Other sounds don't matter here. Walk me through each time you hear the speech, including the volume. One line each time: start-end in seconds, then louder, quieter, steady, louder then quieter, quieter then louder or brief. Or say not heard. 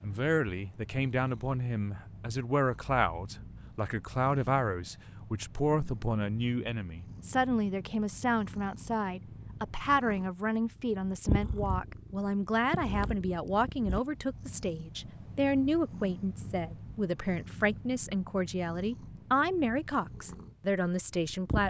0.0-21.6 steady.